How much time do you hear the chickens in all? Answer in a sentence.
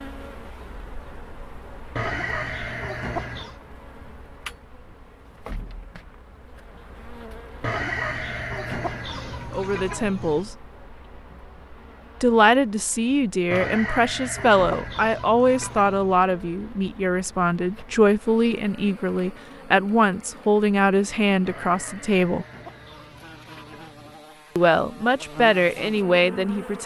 You can hear the chickens for 10 seconds altogether.